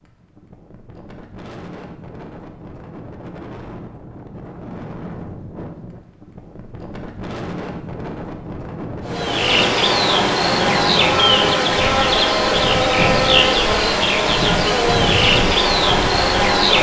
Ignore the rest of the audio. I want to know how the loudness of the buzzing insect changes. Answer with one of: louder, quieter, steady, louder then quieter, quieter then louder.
steady.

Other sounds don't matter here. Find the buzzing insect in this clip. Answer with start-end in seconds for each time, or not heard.
9.1-16.7.